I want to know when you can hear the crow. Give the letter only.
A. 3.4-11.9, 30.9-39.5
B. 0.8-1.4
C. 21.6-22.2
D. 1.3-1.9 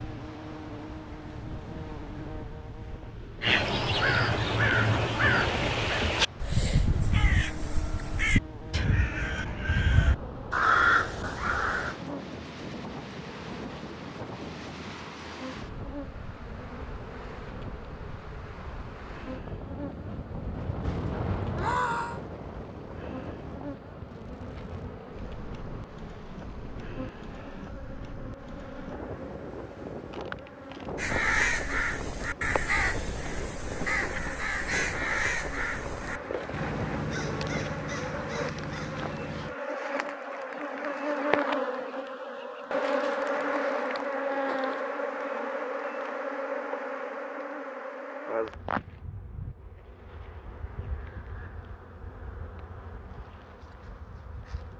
A.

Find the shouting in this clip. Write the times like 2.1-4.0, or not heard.
21.6-22.2.